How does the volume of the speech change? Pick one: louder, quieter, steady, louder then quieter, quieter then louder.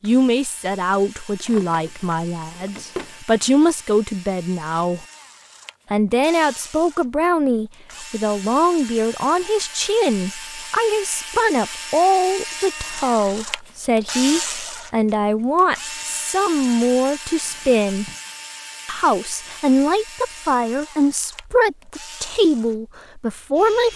steady.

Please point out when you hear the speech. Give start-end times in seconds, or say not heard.
0.0-5.0, 5.9-18.1, 18.9-23.9.